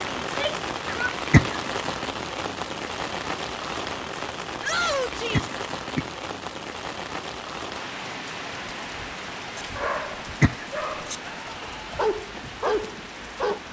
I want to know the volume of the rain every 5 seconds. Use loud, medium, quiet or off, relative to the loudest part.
loud, loud, medium.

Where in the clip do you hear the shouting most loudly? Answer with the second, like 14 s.
5 s.